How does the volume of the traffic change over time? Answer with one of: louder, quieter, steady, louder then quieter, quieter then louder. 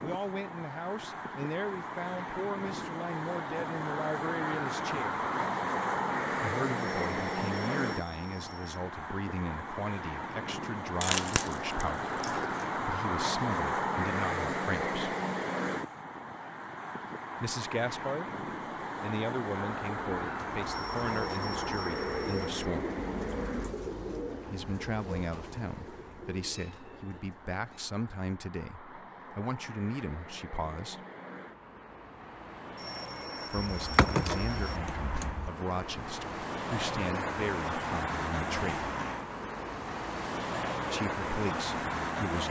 quieter then louder.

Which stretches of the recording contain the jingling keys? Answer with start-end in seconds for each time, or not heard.
11.0-12.7, 33.7-35.5.